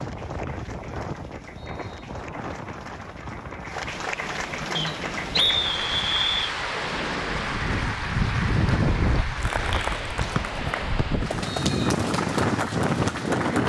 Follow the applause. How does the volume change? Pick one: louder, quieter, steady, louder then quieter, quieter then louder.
louder.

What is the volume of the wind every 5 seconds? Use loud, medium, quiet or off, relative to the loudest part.
medium, loud, loud.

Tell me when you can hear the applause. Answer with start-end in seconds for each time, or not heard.
0.0-13.6.